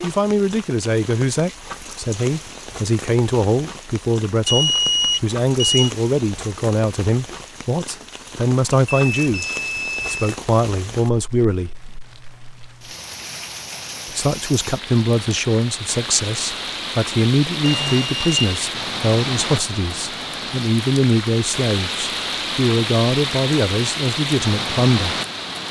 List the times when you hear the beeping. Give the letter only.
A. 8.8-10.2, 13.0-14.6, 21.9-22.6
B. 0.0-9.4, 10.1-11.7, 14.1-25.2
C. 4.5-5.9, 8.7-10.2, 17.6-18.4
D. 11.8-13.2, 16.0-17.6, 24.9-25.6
C.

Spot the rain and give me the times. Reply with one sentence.
The rain can be heard from 0.0 to 25.6 s.